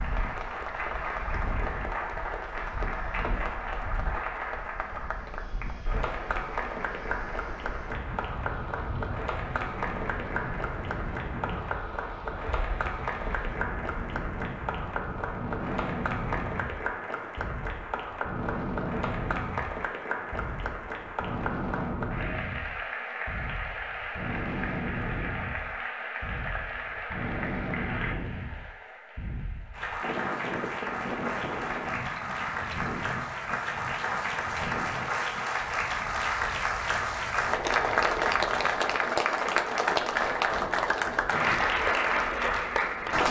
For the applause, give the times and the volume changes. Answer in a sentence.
You can hear the applause from 0.0 to 43.2 s, getting louder.